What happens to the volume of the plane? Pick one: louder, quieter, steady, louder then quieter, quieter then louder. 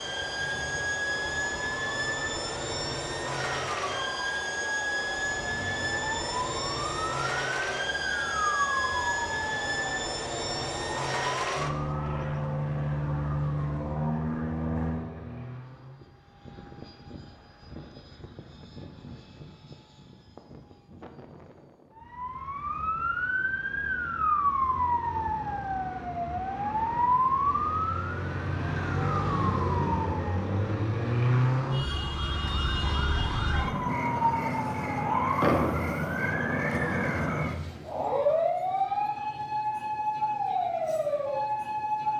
quieter.